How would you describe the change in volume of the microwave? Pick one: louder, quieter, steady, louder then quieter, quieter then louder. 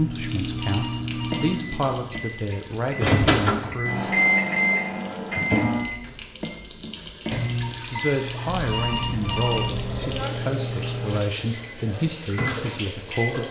louder then quieter.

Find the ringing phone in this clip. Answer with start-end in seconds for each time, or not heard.
0.5-1.6, 8.5-10.0.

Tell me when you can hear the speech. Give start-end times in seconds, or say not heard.
0.0-4.1, 7.9-13.4.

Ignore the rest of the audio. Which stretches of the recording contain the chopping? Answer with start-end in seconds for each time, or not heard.
not heard.